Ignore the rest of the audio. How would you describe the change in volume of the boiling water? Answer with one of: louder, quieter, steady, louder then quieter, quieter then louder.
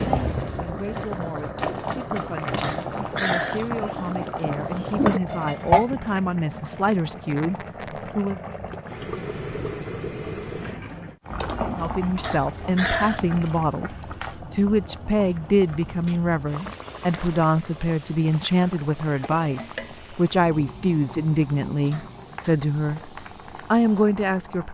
quieter.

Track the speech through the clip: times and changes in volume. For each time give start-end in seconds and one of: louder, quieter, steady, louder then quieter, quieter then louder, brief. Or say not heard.
0.0-8.4 louder
11.6-23.1 steady
23.7-24.6 brief.